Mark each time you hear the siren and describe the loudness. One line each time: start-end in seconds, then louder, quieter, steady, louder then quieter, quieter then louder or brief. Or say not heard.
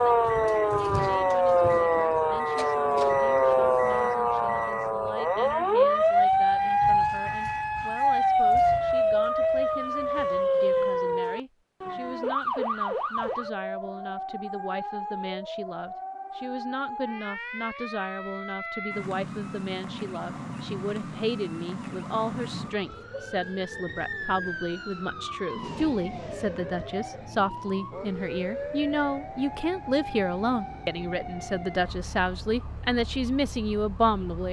0.0-34.4 quieter.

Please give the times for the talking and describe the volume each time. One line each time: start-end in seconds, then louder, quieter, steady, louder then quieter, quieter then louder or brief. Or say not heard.
0.0-34.4 louder.